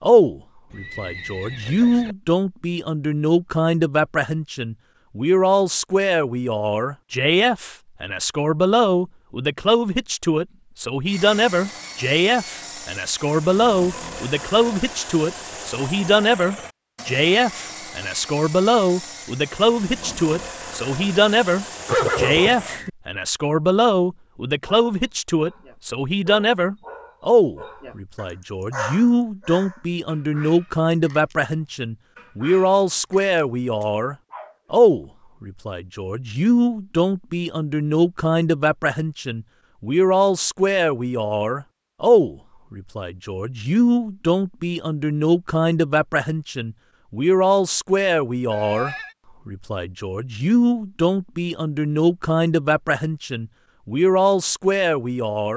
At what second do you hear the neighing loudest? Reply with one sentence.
The loudest moment of the neighing is at 22 seconds.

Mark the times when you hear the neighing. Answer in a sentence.
You can hear the neighing from 0.7 to 2.1 s, from 21.9 to 22.9 s and from 48.5 to 49.1 s.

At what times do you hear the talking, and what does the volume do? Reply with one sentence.
The talking can be heard from 0.0 to 55.5 s, at a steady volume.